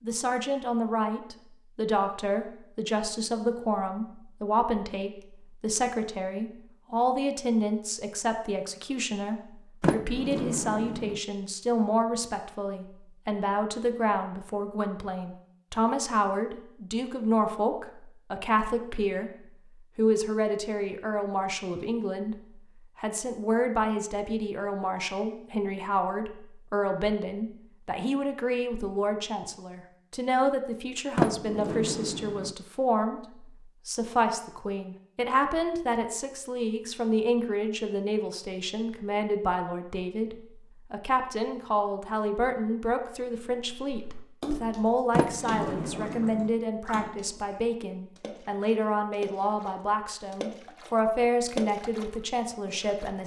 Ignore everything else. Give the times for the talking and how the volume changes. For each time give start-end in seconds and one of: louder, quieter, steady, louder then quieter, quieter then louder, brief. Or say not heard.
0.0-53.2 steady.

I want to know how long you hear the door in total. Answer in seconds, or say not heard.
4 s.